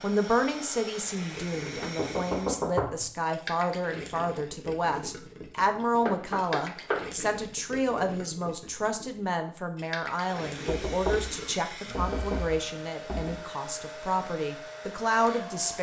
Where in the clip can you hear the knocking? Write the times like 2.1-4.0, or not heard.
1.8-3.0, 6.0-7.0, 10.7-13.3.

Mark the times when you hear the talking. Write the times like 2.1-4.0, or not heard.
0.0-15.7.